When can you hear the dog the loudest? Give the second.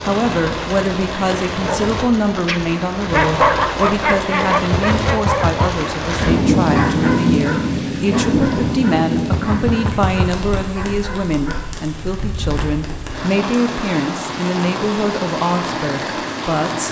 3 s.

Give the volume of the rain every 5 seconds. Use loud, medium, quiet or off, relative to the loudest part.
medium, loud, medium, medium.